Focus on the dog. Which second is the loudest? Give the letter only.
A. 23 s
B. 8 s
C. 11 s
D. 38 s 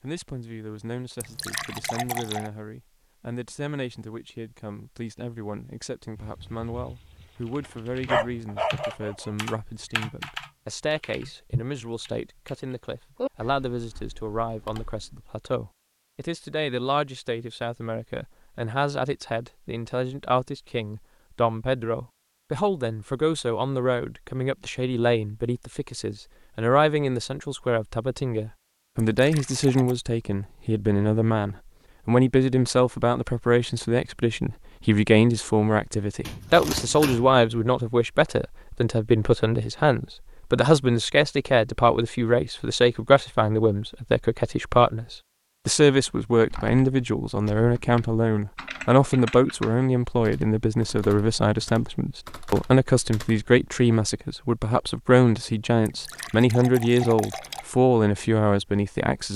B.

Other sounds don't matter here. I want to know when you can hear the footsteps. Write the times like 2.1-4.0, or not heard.
not heard.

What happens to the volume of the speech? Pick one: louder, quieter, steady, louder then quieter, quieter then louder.
louder.